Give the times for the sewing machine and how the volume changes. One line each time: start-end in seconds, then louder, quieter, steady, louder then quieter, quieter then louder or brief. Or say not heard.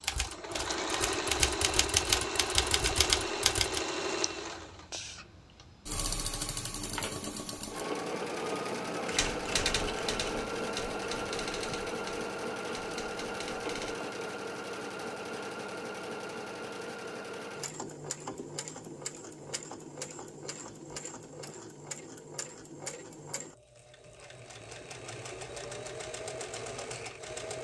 0.0-27.5 quieter.